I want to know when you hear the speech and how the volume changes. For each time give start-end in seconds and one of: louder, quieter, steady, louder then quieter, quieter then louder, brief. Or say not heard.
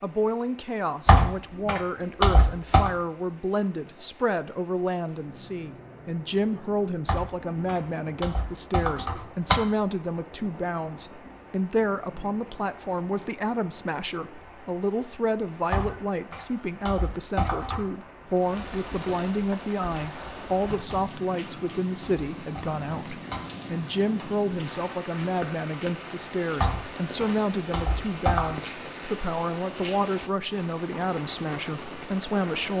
0.0-32.7 steady.